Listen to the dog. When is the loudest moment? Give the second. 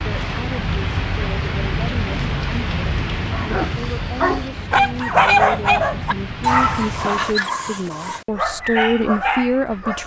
5 s.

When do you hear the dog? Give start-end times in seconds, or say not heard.
3.3-10.0.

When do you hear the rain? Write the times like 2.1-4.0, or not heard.
0.0-7.4.